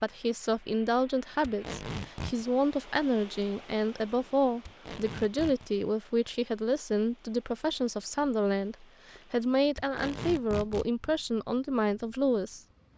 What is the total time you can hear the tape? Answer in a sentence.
The tape can be heard for 3 seconds in total.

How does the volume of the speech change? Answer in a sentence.
The loudness of the speech stays about the same.